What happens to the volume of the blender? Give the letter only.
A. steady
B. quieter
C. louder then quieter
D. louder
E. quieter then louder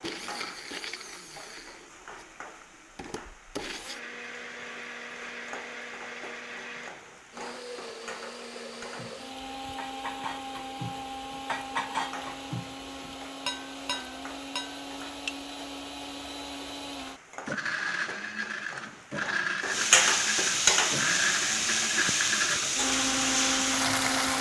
D.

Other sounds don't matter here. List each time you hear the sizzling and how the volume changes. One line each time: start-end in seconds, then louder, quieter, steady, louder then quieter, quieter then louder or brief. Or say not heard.
0.0-24.3 louder.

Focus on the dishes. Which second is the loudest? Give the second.
12 s.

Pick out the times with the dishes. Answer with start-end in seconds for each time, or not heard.
8.8-15.3.